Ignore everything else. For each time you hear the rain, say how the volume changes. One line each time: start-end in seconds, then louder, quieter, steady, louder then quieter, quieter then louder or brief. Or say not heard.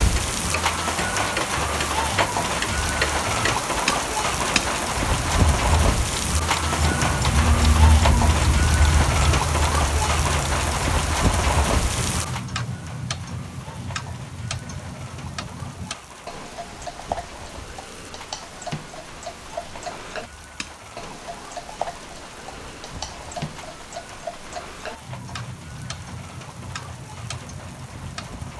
0.0-28.5 quieter.